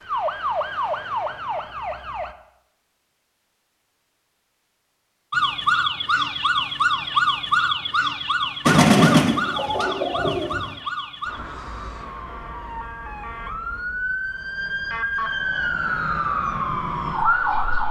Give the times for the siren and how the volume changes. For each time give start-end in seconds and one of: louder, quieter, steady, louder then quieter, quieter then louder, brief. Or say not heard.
0.0-2.4 brief
5.3-17.8 quieter then louder.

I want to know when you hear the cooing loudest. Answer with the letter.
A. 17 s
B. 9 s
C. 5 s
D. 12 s
B.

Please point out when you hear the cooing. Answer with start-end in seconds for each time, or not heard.
8.7-10.7.